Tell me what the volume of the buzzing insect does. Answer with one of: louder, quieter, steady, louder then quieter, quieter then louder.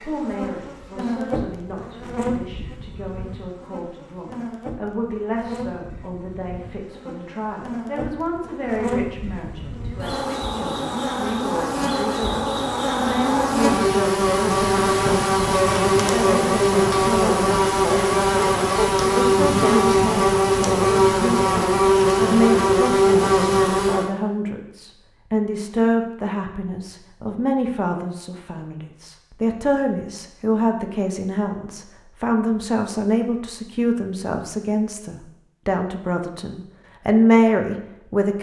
louder.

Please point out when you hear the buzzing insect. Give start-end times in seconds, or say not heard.
0.0-24.1.